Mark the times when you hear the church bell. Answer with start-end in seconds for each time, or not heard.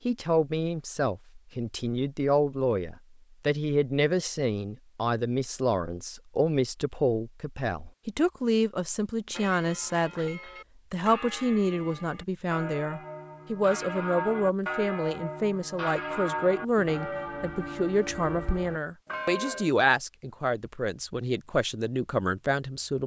9.3-19.7.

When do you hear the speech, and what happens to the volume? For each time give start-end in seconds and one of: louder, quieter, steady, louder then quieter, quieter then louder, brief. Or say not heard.
0.1-23.0 steady.